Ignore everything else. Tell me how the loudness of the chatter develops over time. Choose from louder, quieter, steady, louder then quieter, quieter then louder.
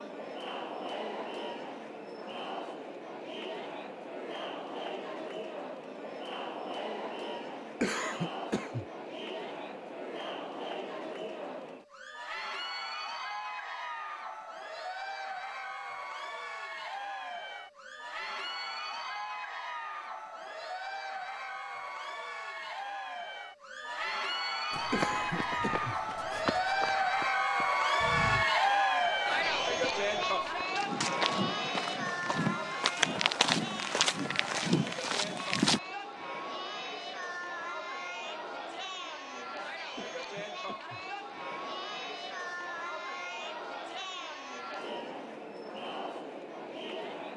louder then quieter.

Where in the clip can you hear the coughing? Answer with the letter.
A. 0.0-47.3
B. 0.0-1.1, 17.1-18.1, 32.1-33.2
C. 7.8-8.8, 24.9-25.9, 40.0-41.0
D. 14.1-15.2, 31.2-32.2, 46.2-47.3
C.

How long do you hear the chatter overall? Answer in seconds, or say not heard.
47 s.